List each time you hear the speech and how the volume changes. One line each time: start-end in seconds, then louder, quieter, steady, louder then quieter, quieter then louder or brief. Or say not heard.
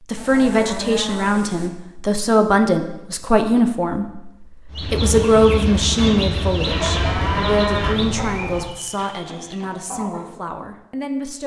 0.0-11.4 quieter.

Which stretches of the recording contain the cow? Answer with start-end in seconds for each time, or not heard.
0.1-1.7, 6.7-8.7.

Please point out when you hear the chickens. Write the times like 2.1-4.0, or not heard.
4.7-10.3.